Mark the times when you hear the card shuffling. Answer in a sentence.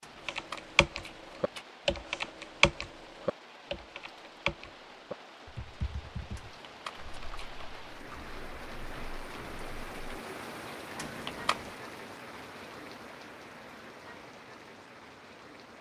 The card shuffling can be heard from 0.0 to 1.6 s, from 6.3 to 7.5 s and from 10.9 to 11.8 s.